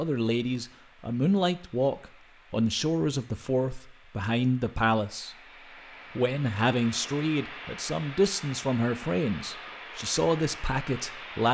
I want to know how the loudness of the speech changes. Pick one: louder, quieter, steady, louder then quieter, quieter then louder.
steady.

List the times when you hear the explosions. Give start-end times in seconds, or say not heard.
not heard.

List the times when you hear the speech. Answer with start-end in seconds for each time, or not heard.
0.0-5.3, 6.2-11.4.